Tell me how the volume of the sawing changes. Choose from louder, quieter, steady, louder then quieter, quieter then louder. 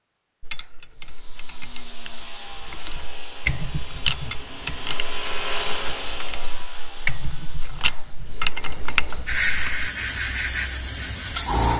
louder then quieter.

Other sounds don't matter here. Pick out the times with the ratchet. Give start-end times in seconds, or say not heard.
0.4-9.9.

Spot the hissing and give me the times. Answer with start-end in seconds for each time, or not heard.
9.2-11.7.